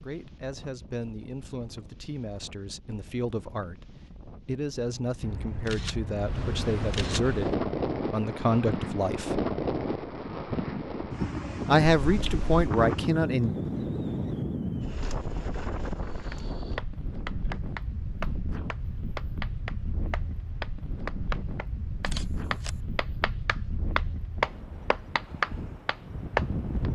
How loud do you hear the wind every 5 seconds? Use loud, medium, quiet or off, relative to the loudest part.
quiet, loud, loud, medium, medium, medium.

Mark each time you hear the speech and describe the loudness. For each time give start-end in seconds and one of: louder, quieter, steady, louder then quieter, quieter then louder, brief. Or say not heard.
0.0-9.4 louder
11.7-13.5 brief.